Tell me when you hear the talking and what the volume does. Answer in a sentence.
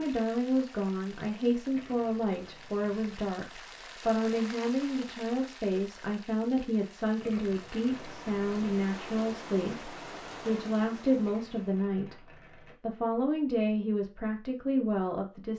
The talking can be heard from 0.0 to 15.5 s, at a steady volume.